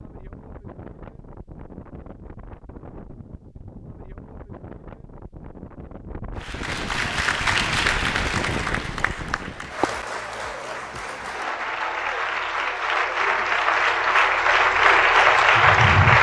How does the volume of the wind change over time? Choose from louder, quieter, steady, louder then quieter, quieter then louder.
louder.